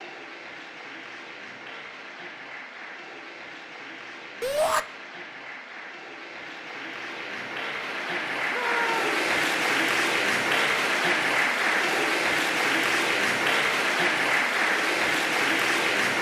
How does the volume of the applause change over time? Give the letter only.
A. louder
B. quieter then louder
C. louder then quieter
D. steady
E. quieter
A.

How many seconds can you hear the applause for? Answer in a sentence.
You can hear the applause for 16 seconds altogether.